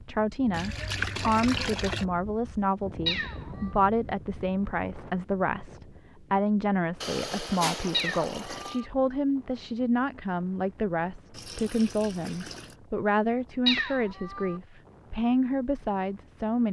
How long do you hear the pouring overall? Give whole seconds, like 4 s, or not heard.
5 s.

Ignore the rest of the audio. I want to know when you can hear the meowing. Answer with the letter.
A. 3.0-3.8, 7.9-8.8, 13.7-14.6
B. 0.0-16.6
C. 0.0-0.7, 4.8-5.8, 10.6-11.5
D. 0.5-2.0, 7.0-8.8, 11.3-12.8
A.